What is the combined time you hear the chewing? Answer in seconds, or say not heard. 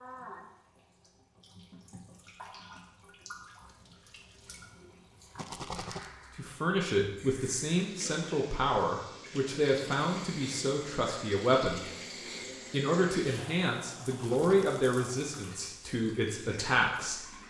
not heard.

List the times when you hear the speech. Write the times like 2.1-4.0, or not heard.
6.3-11.8, 12.6-17.2.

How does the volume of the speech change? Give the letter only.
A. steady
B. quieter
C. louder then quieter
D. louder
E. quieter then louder
A.